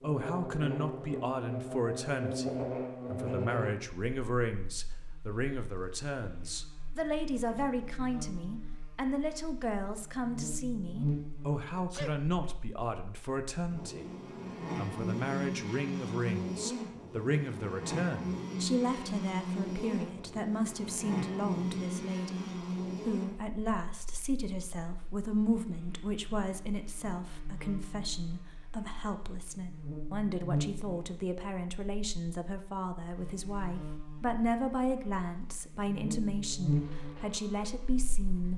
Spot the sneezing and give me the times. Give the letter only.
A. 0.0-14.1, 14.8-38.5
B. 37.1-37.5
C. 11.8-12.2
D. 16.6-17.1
C.